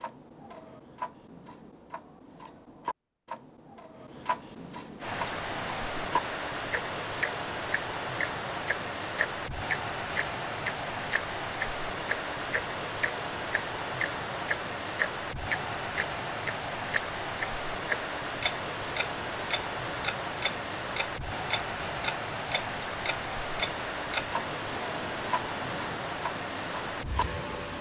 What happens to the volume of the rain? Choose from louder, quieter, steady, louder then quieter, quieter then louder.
steady.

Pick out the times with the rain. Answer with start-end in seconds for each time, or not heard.
5.0-27.7.